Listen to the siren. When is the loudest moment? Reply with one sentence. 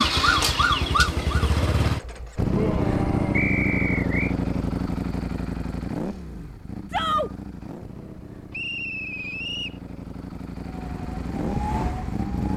The loudest moment of the siren is at 1 second.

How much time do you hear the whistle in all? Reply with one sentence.
The whistle can be heard for 2 seconds in total.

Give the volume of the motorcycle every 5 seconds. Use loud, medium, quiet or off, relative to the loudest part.
loud, medium, medium.